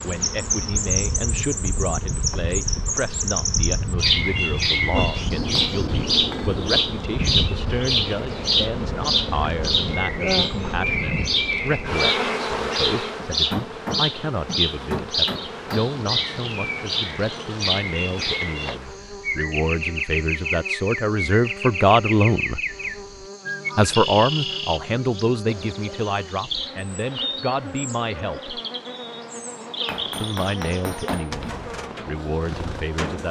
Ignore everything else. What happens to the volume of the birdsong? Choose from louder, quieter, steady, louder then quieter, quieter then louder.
quieter.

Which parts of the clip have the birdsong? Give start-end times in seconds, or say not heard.
0.0-33.2.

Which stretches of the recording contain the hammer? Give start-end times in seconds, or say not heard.
5.3-6.7, 13.2-15.9, 29.9-31.6.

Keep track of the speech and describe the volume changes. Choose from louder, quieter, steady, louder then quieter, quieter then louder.
louder then quieter.